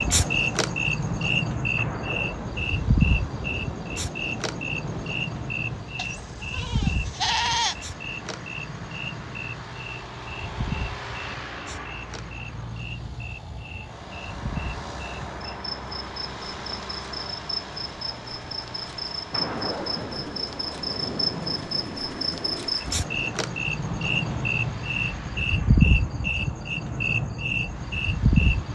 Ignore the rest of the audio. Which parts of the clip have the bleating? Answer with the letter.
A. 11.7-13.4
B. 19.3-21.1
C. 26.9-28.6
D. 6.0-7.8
D.